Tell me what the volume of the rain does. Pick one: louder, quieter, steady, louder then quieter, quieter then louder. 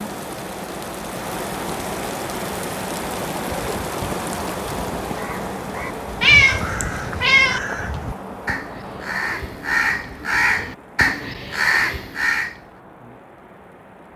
quieter.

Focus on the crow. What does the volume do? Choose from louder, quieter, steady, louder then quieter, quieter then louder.
louder.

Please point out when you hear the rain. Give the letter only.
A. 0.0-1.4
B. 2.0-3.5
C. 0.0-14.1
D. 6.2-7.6
C.